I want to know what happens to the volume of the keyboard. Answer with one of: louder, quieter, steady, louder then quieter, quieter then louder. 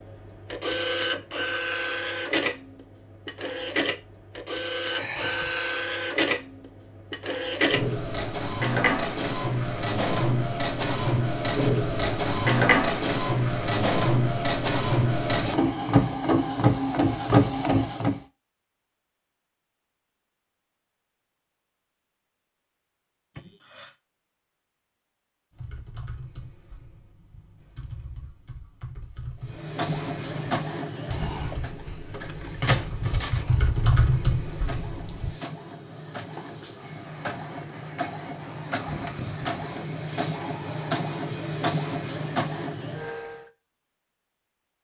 louder.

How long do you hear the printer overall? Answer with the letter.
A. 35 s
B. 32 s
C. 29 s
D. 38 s
B.